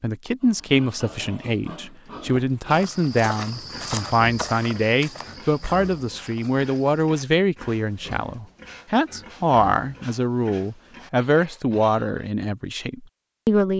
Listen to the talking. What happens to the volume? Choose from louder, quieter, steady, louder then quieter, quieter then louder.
steady.